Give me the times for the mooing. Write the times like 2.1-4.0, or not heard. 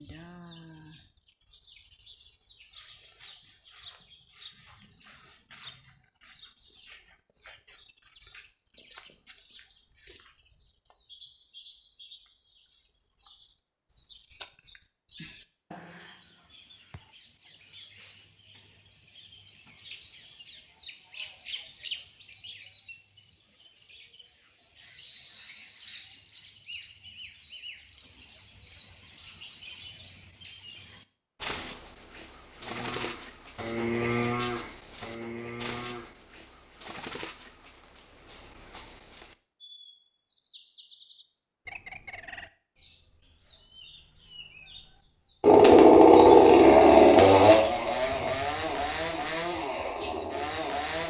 32.5-36.1.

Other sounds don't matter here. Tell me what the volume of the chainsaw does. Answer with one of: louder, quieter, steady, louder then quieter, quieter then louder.
quieter.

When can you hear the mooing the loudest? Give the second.
34 s.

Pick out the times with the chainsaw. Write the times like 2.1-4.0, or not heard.
45.4-51.0.